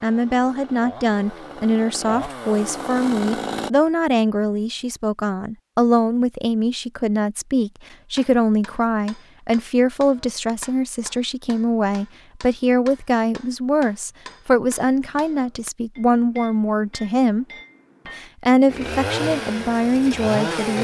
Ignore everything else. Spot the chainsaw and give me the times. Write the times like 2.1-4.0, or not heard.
0.0-3.7, 18.6-20.7.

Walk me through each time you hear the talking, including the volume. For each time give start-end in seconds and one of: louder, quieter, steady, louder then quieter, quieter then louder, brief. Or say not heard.
0.0-17.4 steady
18.1-20.7 brief.